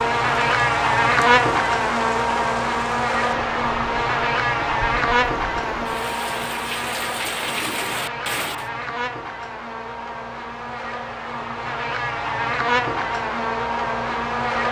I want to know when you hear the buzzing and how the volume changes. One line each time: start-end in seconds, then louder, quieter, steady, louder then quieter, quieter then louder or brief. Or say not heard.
0.0-14.6 quieter then louder.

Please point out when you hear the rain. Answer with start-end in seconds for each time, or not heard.
0.0-8.7.